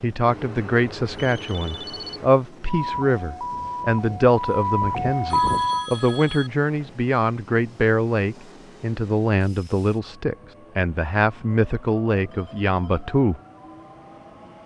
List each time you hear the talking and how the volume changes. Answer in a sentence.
The talking can be heard from 0.0 to 13.4 s, at a steady volume.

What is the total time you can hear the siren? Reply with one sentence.
You can hear the siren for 3 seconds altogether.